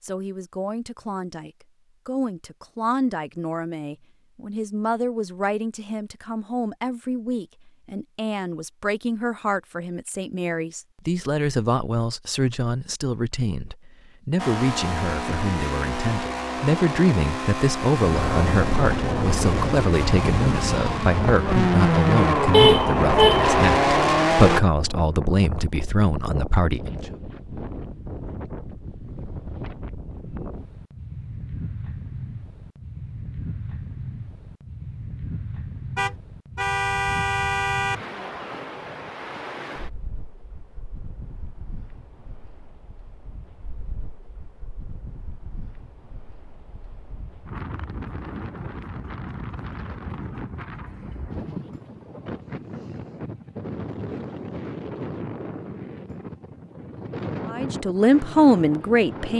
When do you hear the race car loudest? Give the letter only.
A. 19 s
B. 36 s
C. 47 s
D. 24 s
D.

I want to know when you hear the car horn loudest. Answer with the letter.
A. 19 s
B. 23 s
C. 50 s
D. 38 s
B.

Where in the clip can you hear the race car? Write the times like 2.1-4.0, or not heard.
14.3-24.6.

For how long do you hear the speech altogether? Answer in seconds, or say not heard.
29 s.